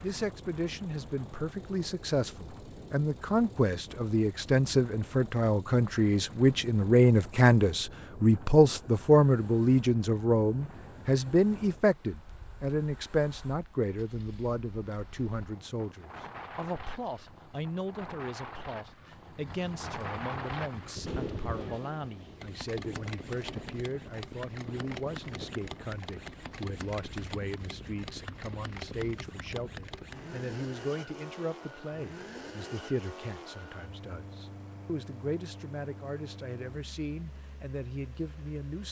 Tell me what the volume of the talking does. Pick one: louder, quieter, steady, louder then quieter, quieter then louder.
quieter.